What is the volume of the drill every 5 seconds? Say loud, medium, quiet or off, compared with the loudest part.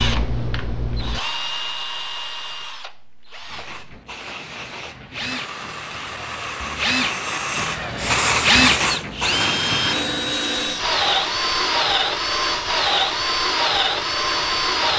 medium, loud, loud.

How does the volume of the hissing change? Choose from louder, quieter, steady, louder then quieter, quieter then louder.
louder then quieter.